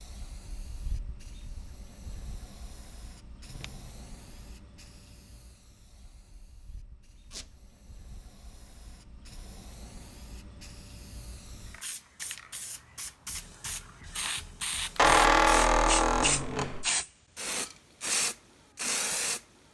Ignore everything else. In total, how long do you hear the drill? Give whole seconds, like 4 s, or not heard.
not heard.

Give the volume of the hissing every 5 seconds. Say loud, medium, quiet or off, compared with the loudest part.
quiet, quiet, medium, loud.